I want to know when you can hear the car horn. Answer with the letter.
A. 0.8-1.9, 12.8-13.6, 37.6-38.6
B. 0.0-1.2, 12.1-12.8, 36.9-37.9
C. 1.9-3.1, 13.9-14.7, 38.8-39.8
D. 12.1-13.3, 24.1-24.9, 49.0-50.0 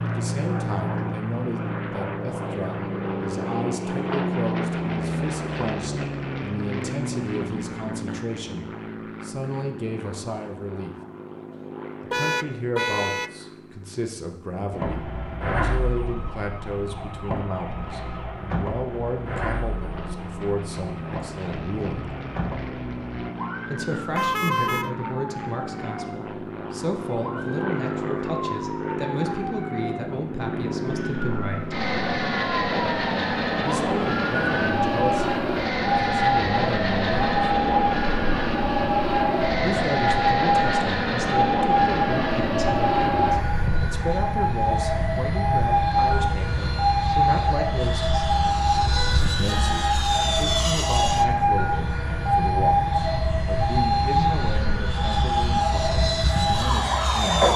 D.